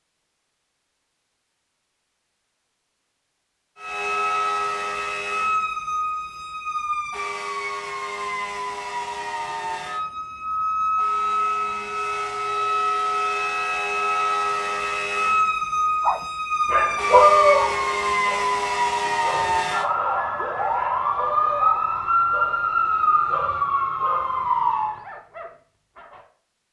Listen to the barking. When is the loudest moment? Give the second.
17 s.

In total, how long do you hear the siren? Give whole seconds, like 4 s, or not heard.
21 s.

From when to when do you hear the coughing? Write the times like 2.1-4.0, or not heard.
not heard.